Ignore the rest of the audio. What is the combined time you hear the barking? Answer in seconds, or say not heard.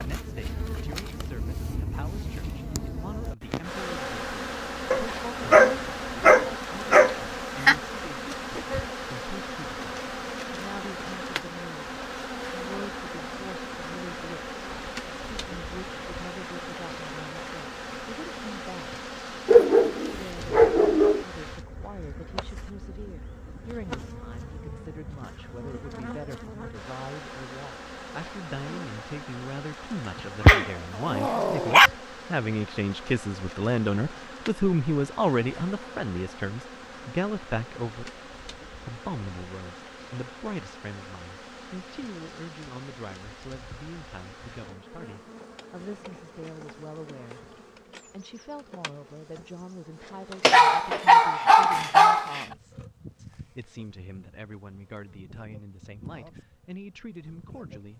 8 s.